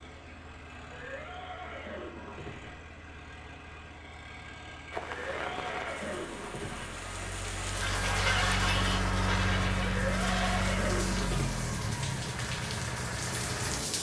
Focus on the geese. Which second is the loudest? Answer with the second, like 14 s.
8 s.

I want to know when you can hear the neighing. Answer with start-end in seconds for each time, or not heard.
0.9-2.8, 5.0-7.0, 9.8-11.6.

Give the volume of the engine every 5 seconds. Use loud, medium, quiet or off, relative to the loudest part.
quiet, loud, loud.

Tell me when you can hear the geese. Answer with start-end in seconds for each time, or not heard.
7.6-10.8.